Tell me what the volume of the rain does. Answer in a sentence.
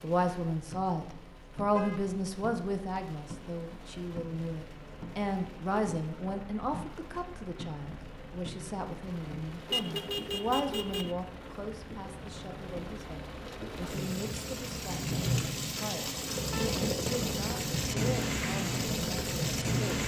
The loudness of the rain goes up.